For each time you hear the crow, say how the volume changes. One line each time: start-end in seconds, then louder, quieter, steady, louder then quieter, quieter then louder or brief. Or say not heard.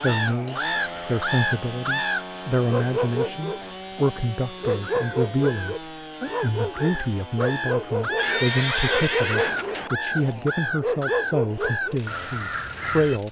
0.0-2.2 brief
4.8-13.2 louder.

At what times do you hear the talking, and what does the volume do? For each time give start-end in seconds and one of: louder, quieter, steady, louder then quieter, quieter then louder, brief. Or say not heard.
0.0-13.2 steady.